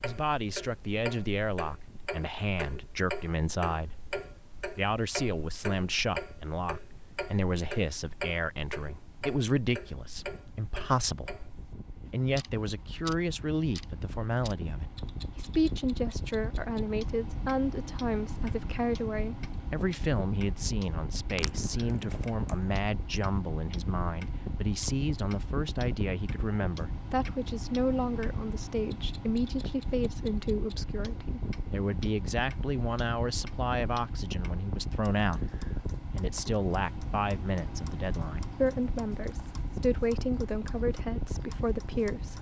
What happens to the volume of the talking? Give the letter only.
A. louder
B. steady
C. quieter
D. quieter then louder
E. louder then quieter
B.